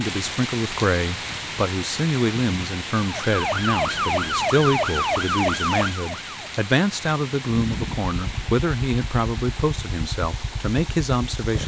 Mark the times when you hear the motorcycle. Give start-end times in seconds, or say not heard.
7.5-11.6.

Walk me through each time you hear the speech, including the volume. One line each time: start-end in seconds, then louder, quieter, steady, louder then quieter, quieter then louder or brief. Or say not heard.
0.0-11.6 steady.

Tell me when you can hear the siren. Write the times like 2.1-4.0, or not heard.
3.0-6.5.